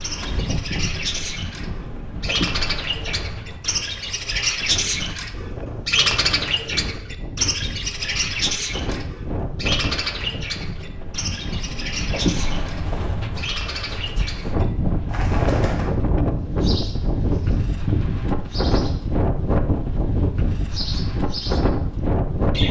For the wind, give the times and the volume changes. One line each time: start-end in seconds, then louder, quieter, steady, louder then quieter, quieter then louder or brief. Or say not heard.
0.0-22.6 louder.